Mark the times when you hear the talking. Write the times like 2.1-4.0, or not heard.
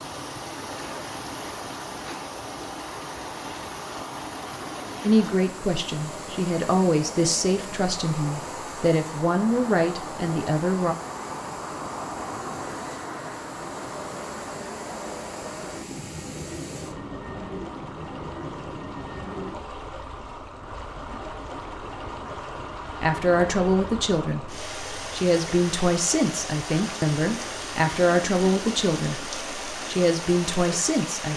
5.0-10.9, 23.0-31.3.